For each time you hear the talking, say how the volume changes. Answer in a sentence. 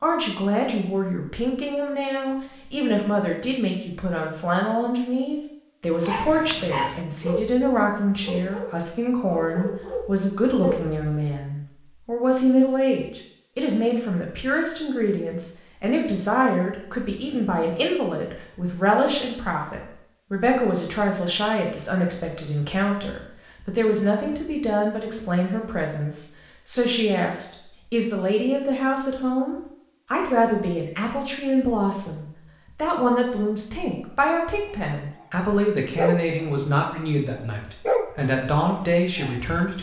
The talking can be heard from 0.0 to 39.7 s, at a steady volume.